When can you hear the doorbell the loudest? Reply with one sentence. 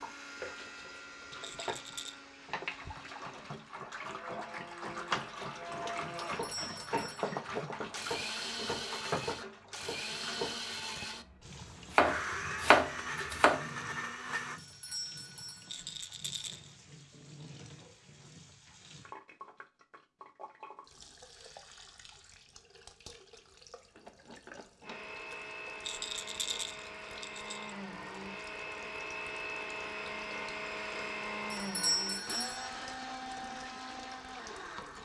The volume of the doorbell peaks at 32 seconds.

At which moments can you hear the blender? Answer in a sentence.
The blender can be heard from 0.0 to 14.6 s and from 24.8 to 34.9 s.